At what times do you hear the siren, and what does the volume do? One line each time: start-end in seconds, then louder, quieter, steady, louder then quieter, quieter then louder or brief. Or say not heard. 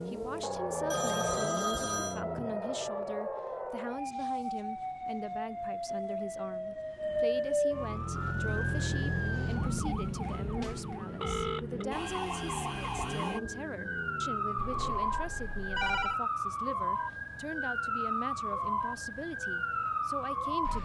0.0-20.8 steady.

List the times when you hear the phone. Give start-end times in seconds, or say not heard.
0.9-2.2, 11.2-11.8, 14.6-16.2.